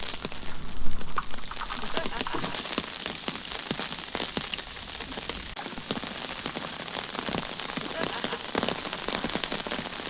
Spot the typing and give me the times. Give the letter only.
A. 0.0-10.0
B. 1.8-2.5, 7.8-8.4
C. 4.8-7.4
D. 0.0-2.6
D.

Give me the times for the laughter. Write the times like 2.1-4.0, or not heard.
1.8-2.5, 7.8-8.4.